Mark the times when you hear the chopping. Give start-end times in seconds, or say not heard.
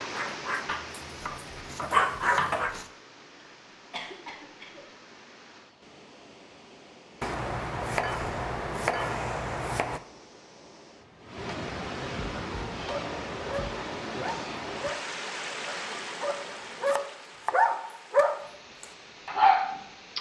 0.7-2.9, 7.2-10.0, 15.7-17.6.